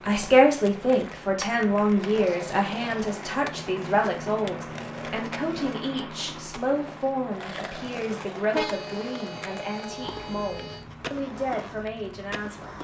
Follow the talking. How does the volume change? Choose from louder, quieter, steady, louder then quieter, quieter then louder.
quieter.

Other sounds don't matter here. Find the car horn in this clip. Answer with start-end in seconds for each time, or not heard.
8.5-10.8.